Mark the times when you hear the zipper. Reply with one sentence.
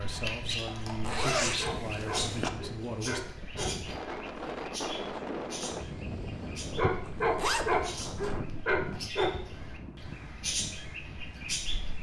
The zipper can be heard from 1.0 to 2.5 s and from 7.0 to 8.3 s.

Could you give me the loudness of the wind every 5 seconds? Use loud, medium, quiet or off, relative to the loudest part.
loud, loud, medium.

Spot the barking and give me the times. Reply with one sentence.
You can hear the barking from 1.1 to 4.2 s and from 6.8 to 9.3 s.